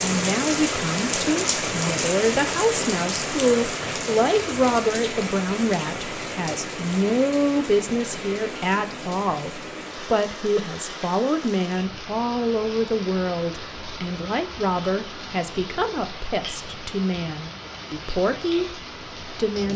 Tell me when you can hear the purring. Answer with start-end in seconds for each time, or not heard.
not heard.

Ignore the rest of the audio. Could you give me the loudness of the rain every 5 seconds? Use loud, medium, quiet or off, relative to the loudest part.
loud, medium, medium, medium.